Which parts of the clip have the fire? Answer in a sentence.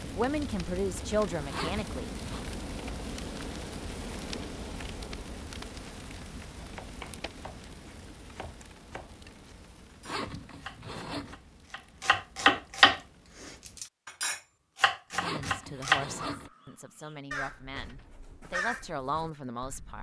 The fire can be heard from 0.0 to 13.8 s.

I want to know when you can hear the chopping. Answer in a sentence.
The chopping can be heard from 6.5 to 16.1 s.